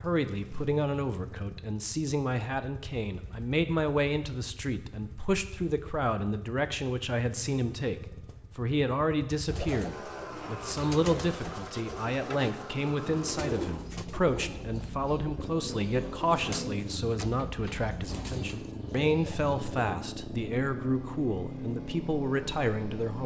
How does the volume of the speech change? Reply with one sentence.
The volume of the speech stays about the same.